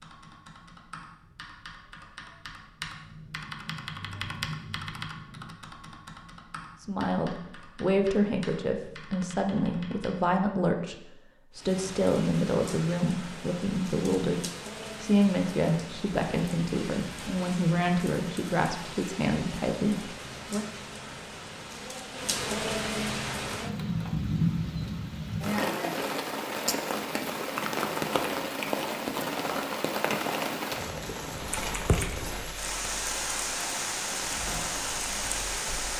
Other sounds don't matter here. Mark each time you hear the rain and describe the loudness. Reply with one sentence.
The rain can be heard from 11.5 to 35.9 s, getting louder.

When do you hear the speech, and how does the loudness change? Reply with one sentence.
The speech can be heard from 6.8 to 20.6 s, at a steady volume.